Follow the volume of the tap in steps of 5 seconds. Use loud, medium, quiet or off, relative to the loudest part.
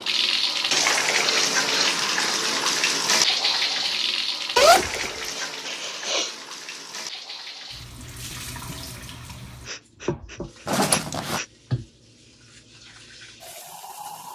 loud, quiet, quiet.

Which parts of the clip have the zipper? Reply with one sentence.
You can hear the zipper from 4.5 to 5.1 s and from 10.7 to 11.4 s.